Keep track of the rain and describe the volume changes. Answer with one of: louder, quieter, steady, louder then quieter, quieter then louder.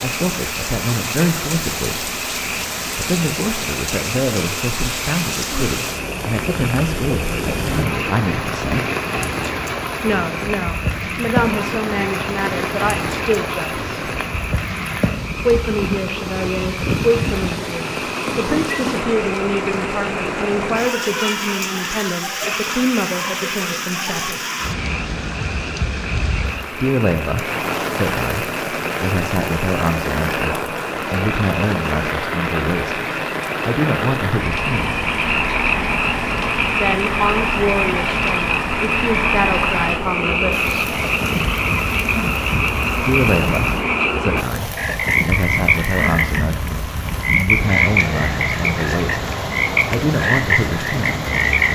steady.